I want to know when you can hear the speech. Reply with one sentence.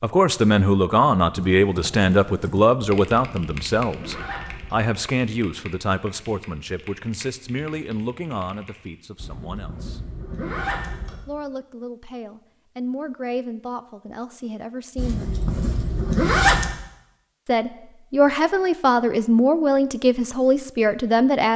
You can hear the speech from 0.0 to 10.0 s, from 11.2 to 15.3 s and from 17.4 to 21.5 s.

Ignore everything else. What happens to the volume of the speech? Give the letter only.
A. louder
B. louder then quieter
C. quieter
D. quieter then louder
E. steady
D.